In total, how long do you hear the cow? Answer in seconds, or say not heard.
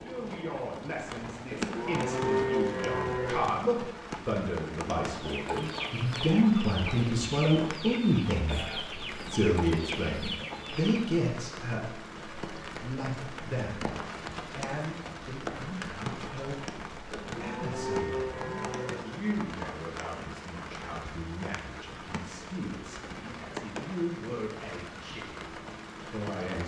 4 s.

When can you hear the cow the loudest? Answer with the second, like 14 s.
2 s.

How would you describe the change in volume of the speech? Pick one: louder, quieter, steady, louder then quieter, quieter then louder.
louder then quieter.